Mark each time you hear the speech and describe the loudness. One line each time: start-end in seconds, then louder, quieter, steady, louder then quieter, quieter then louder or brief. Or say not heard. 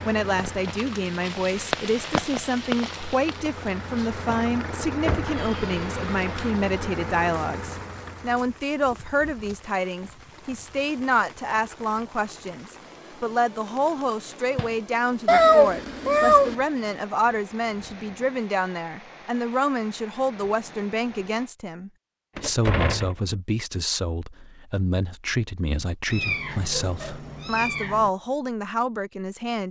0.1-29.6 steady.